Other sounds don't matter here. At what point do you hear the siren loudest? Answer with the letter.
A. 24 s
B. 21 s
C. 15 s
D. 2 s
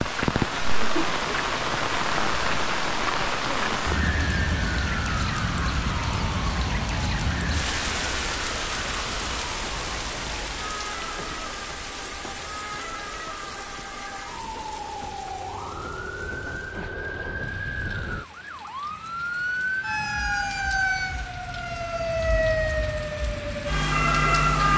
A.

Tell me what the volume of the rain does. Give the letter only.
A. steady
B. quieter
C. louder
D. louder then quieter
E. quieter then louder
B.